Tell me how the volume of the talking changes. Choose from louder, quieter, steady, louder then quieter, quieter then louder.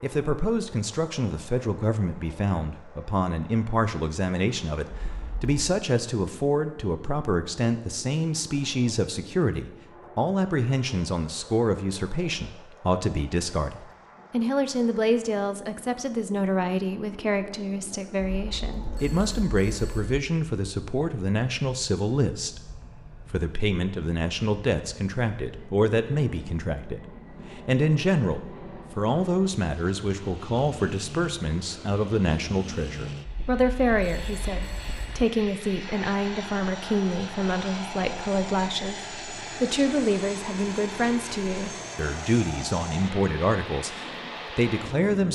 steady.